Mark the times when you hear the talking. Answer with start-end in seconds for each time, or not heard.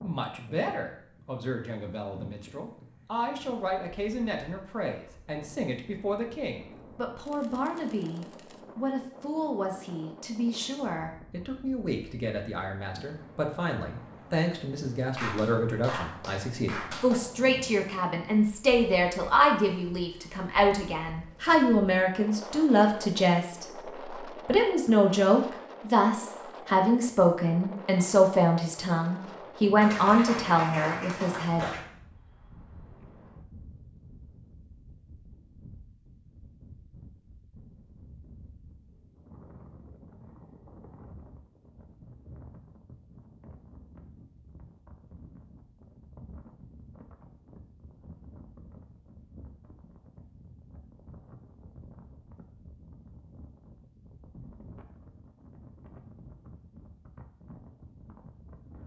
0.0-31.7.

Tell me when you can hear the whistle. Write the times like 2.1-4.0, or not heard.
not heard.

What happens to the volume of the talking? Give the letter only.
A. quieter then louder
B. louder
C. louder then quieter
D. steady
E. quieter
B.